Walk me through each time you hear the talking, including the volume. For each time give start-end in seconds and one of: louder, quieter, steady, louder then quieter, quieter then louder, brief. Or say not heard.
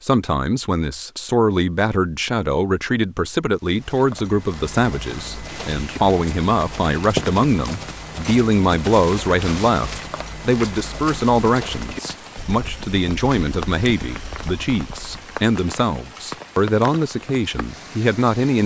0.0-18.6 steady.